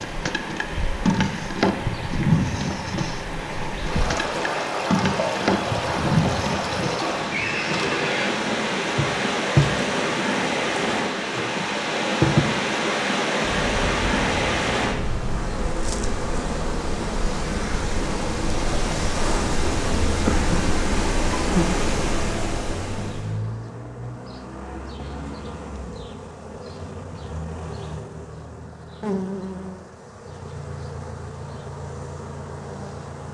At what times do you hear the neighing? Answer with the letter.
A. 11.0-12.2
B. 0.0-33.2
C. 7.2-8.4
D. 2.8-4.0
C.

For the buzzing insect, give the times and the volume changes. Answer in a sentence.
The buzzing insect can be heard from 0.0 to 33.2 s, getting quieter.